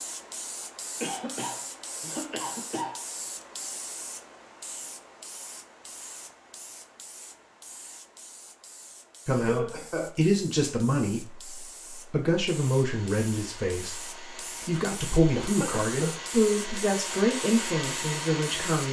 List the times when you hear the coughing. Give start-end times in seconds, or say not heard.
1.0-3.0, 9.3-10.1, 15.3-16.1.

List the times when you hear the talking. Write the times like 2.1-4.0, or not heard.
9.2-18.8.